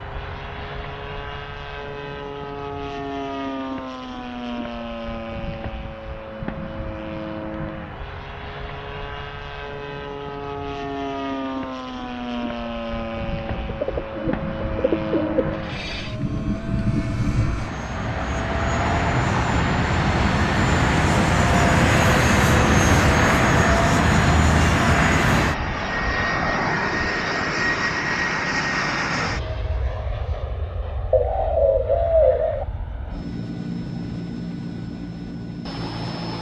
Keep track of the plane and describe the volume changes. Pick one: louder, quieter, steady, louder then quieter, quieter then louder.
louder then quieter.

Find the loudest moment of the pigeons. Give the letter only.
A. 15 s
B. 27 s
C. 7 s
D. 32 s
D.